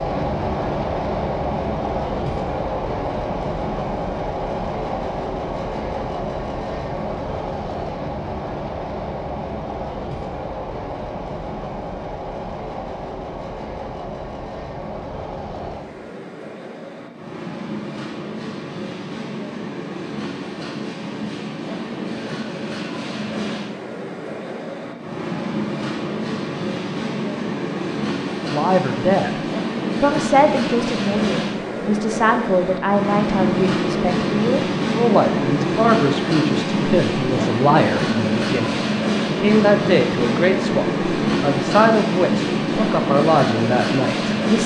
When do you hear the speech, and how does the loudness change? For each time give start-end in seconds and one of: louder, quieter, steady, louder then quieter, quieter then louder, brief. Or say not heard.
28.4-29.4 brief
30.0-44.6 steady.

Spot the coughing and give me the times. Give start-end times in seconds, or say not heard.
not heard.